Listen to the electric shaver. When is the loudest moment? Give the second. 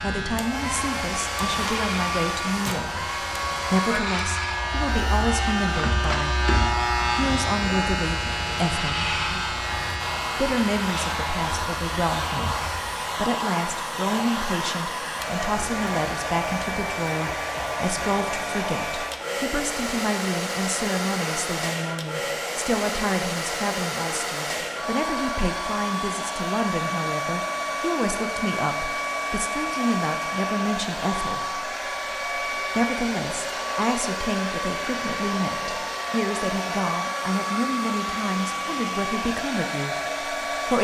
7 s.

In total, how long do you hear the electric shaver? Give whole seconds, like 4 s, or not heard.
13 s.